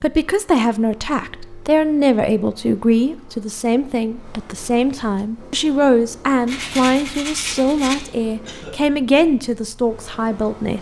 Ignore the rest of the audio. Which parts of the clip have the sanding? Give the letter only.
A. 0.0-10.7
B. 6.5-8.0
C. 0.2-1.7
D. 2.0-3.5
B.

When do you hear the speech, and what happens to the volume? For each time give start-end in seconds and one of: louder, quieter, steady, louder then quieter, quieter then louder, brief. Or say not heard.
0.0-10.7 steady.